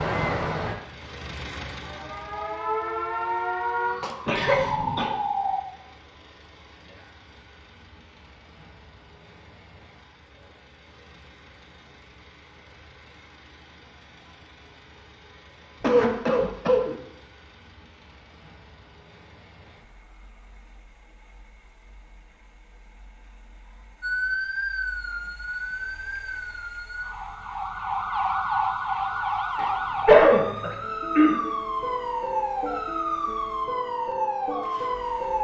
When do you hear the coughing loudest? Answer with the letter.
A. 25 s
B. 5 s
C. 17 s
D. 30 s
D.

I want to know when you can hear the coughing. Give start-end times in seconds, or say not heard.
4.2-5.1, 15.8-16.9, 29.6-31.4.